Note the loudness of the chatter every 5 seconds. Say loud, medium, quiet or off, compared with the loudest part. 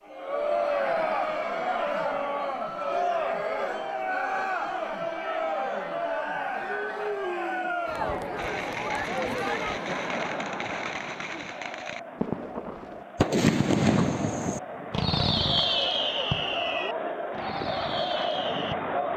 loud, loud, medium, loud.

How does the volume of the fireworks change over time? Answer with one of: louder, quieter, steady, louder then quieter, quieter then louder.
louder then quieter.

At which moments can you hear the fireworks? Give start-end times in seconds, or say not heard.
8.3-18.8.